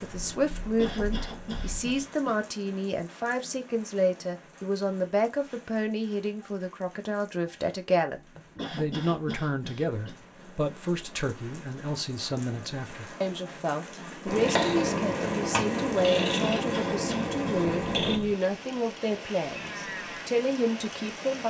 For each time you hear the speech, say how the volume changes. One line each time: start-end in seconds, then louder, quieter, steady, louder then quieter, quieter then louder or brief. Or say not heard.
0.0-21.4 steady.